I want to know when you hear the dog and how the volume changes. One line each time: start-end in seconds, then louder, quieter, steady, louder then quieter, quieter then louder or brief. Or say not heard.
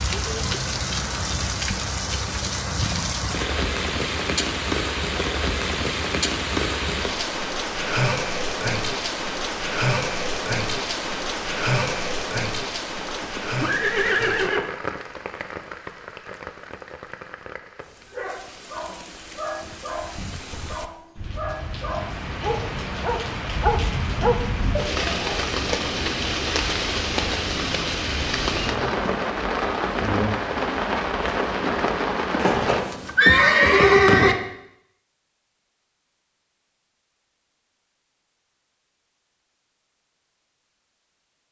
18.1-25.4 louder.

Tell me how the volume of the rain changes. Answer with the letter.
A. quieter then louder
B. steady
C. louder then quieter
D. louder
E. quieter
A.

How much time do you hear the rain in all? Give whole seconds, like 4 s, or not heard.
33 s.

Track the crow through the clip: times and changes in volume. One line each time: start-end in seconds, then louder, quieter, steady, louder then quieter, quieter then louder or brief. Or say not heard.
not heard.